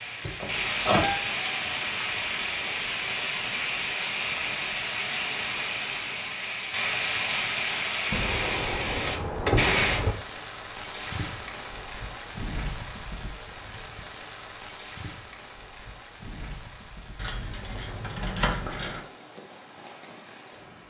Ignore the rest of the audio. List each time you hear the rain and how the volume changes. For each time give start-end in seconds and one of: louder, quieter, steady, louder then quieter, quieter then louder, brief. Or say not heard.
0.0-20.8 quieter.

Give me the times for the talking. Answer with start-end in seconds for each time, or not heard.
not heard.